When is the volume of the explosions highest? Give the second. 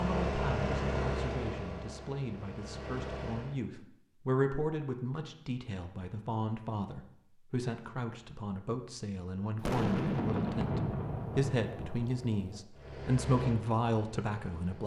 10 s.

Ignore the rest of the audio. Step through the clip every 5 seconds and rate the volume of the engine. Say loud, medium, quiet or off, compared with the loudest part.
loud, off, medium.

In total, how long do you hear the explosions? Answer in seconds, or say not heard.
3 s.